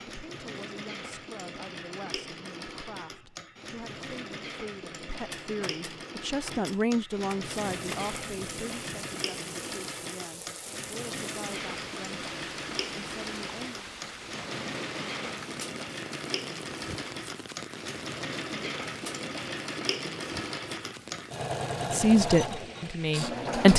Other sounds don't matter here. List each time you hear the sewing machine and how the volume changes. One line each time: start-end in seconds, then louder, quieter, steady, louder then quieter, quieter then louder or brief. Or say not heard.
0.0-23.7 louder.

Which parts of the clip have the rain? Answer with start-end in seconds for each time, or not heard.
7.5-23.5.